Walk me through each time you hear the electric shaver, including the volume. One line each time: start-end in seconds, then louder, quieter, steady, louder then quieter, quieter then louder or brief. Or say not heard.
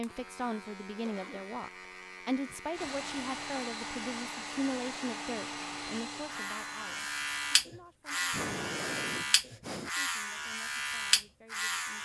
0.0-12.0 louder.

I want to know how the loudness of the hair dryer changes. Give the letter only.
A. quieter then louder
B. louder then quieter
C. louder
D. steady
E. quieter
E.